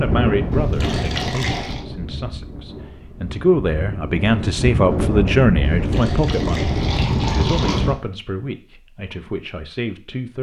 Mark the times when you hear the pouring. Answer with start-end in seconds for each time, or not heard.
0.5-1.9, 5.6-8.0.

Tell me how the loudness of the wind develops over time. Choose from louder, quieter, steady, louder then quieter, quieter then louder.
quieter then louder.